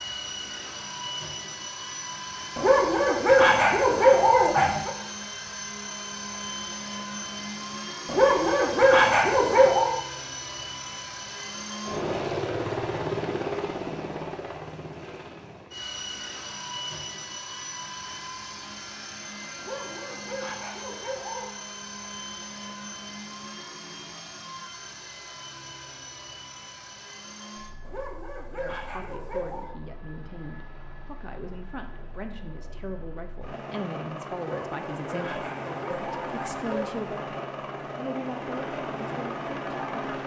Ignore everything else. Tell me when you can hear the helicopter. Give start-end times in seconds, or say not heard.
0.0-40.2.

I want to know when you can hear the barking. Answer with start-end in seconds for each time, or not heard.
2.5-4.9, 8.1-9.9, 19.6-21.4, 27.9-29.7, 34.4-37.0.